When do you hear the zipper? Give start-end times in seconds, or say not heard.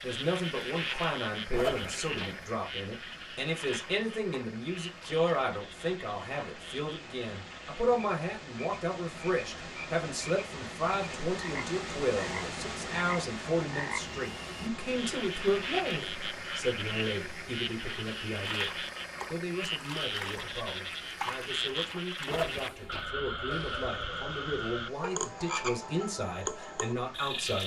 1.5-2.5, 22.2-23.1.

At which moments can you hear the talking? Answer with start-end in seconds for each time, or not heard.
0.0-27.6.